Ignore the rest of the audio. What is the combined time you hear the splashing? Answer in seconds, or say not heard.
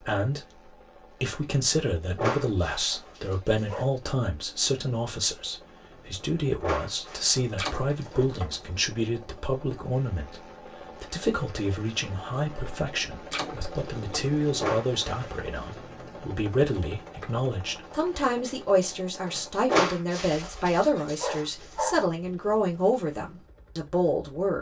2 s.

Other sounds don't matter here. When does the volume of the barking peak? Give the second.
20 s.